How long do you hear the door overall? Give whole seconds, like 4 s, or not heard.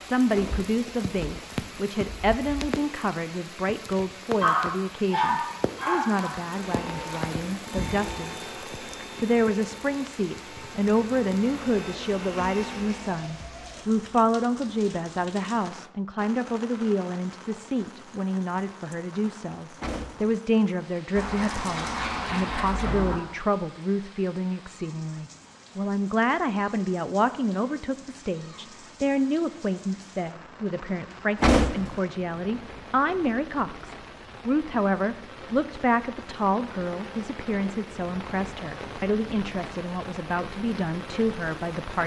2 s.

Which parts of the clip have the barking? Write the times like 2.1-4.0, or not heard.
4.4-6.3, 21.1-23.1.